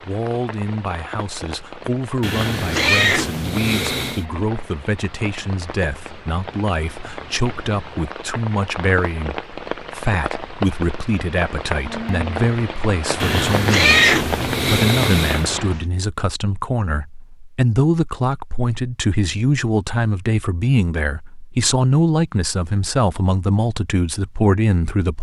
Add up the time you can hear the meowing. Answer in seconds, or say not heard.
4 s.